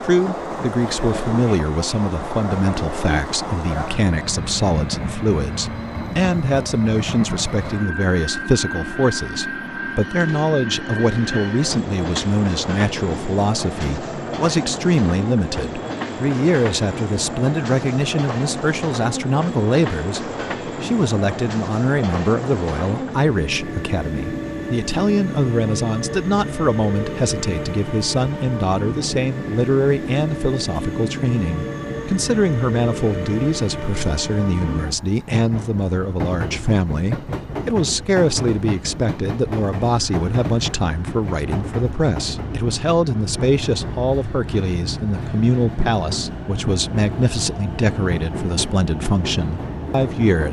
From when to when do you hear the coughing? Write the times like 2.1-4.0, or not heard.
not heard.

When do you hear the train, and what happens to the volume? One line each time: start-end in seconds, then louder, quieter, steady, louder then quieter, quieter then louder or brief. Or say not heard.
0.0-50.4 steady.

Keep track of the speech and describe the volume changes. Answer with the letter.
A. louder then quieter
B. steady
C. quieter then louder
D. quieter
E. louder
B.